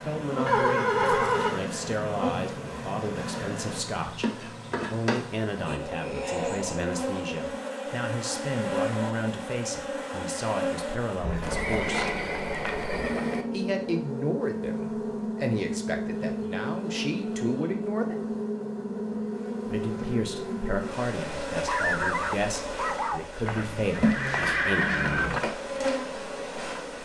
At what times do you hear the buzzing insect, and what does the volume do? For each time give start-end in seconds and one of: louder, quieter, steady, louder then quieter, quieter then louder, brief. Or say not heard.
0.0-27.0 steady.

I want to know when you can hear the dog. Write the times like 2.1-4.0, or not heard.
21.5-23.2.